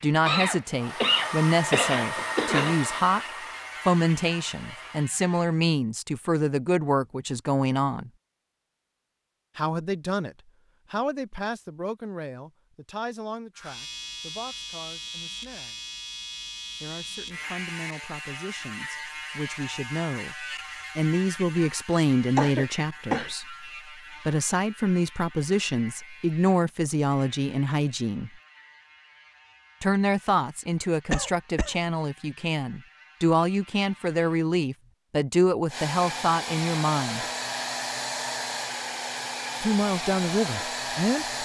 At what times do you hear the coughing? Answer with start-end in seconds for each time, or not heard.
0.2-2.8, 22.4-23.3, 31.1-31.8.